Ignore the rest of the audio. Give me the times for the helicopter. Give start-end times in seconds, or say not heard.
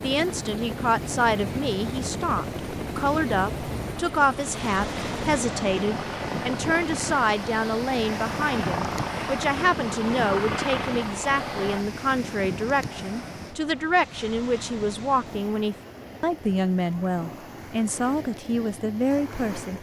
0.0-11.8.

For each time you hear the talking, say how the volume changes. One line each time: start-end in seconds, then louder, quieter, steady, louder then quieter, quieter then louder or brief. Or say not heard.
0.0-19.7 steady.